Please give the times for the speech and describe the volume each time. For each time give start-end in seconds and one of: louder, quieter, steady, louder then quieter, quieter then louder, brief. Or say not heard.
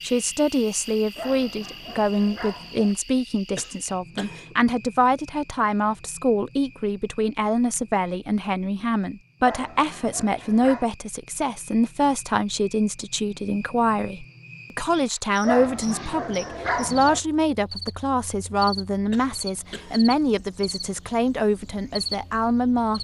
0.0-23.0 steady.